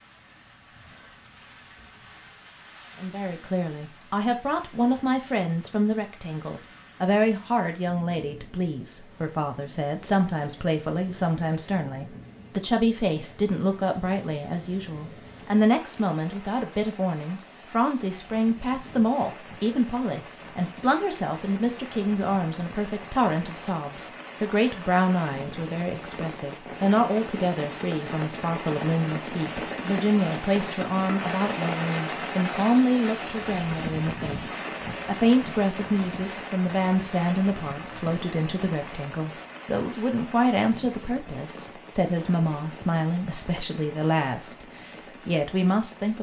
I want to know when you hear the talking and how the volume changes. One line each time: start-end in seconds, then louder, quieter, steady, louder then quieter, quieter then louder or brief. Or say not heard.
3.0-46.1 steady.